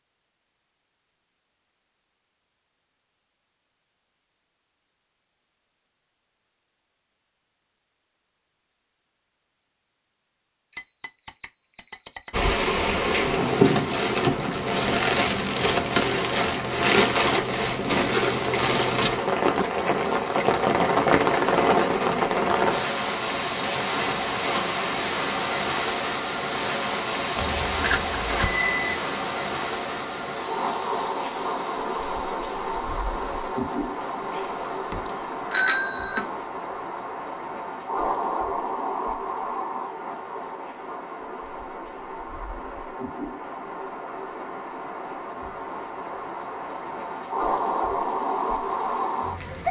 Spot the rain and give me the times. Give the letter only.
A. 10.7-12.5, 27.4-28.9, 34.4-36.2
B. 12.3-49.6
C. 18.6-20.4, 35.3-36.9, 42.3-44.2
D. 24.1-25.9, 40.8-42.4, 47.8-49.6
B.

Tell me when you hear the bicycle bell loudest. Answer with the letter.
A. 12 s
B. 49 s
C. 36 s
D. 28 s
C.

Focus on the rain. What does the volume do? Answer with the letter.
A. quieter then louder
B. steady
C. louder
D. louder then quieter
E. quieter
E.